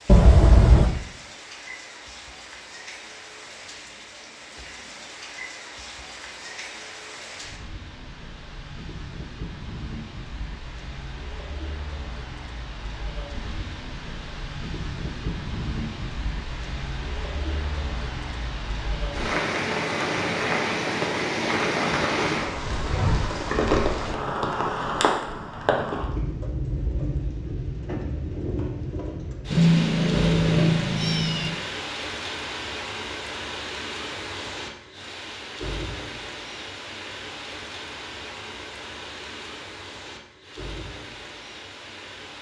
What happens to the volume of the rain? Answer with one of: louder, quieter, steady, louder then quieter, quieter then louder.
louder then quieter.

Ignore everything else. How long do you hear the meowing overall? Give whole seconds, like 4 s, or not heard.
3 s.